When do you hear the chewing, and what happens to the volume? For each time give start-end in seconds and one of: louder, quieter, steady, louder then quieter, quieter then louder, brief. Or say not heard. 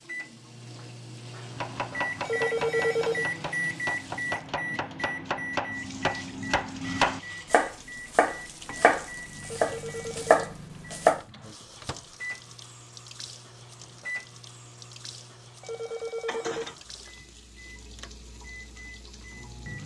not heard.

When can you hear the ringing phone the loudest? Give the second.
3 s.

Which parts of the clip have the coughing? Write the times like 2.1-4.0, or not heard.
not heard.